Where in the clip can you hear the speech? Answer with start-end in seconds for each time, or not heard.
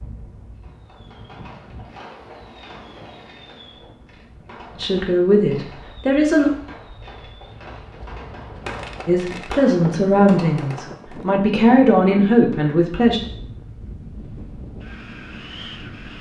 4.8-6.5, 9.1-13.2.